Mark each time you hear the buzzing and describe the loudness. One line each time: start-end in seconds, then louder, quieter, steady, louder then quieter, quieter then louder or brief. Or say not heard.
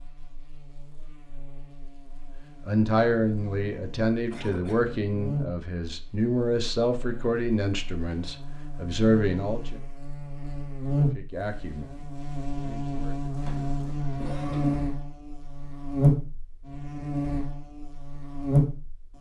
0.0-19.1 louder.